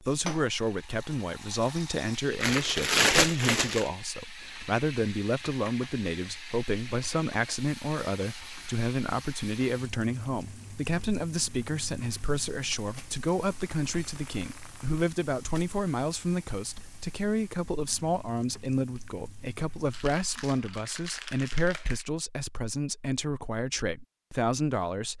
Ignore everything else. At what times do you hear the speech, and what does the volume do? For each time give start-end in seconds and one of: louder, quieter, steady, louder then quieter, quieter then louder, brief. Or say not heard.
0.0-25.1 steady.